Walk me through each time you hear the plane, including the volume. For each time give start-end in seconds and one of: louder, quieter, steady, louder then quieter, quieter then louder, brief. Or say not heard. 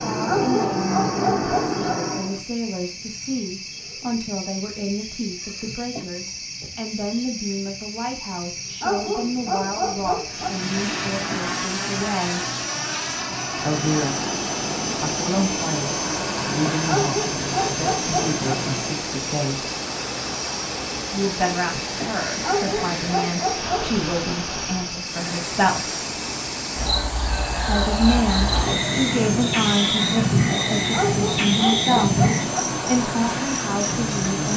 0.0-2.4 brief
10.2-19.1 steady
28.2-34.5 steady.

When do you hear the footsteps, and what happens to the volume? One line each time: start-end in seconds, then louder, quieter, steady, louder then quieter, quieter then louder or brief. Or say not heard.
not heard.